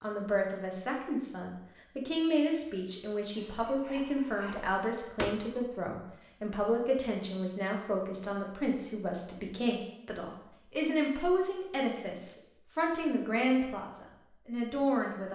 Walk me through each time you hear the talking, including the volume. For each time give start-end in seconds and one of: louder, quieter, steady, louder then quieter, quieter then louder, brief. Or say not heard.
0.0-15.3 steady.